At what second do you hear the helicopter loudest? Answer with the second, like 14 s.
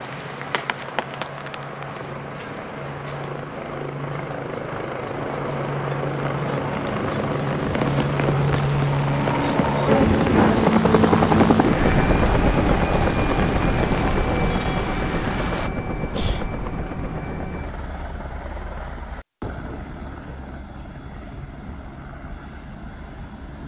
11 s.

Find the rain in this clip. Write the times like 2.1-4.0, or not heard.
0.0-15.7.